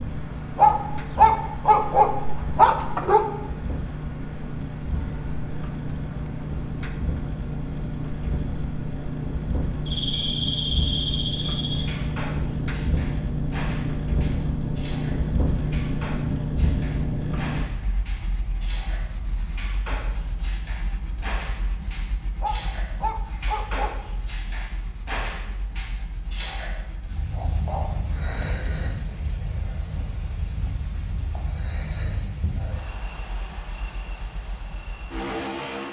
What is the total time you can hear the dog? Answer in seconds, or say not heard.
4 s.